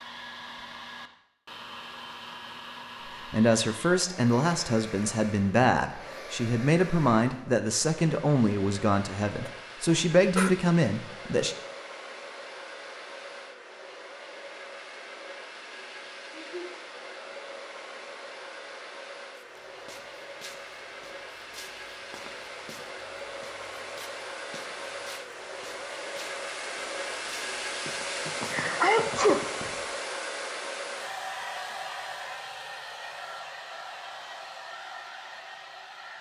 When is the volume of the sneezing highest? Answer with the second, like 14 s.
29 s.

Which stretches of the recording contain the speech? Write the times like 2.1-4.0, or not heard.
3.0-11.6.